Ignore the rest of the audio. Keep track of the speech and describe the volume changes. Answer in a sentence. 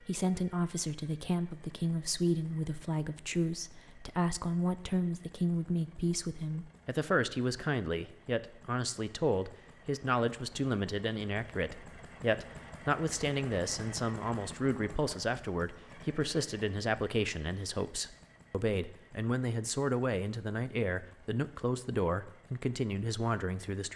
The volume of the speech stays about the same.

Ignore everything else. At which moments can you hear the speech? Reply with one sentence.
You can hear the speech from 0.0 to 23.9 s.